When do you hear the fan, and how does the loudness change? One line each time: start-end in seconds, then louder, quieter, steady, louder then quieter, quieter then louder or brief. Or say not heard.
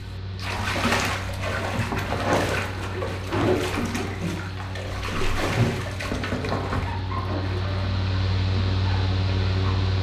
0.0-9.9 louder.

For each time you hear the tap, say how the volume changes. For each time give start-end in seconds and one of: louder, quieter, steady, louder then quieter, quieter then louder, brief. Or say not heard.
0.3-9.9 quieter.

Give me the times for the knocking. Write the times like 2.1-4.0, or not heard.
1.9-2.6, 5.9-6.8.